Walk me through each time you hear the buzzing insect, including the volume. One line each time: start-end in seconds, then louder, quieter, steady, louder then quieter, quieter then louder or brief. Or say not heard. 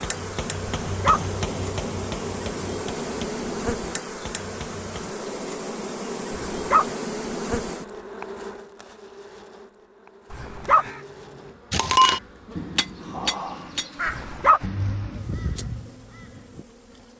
0.0-17.1 quieter.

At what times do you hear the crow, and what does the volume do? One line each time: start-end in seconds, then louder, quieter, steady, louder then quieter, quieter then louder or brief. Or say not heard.
10.6-17.1 louder then quieter.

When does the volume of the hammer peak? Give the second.
12 s.